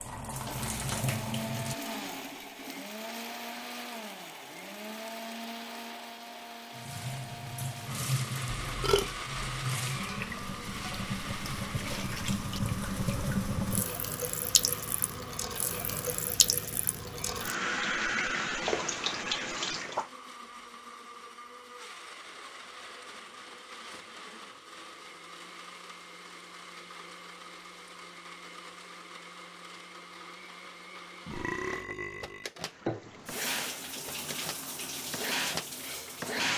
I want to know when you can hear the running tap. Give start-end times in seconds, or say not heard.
0.0-2.9, 6.8-20.1, 32.6-36.5.